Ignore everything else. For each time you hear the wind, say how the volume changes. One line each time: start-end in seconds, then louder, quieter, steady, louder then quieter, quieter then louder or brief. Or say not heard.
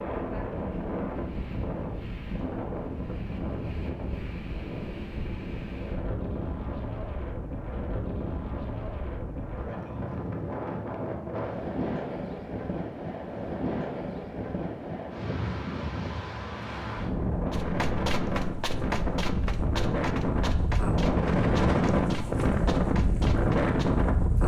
0.0-24.4 louder.